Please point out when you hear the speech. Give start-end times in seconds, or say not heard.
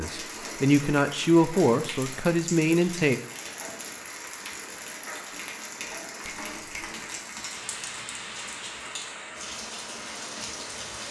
0.0-3.2.